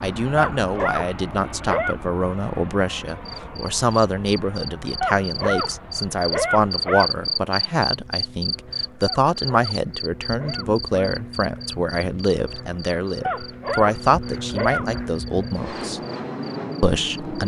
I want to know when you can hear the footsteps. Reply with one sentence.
You can't hear the footsteps here.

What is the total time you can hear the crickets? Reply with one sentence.
The crickets can be heard for 14 seconds in total.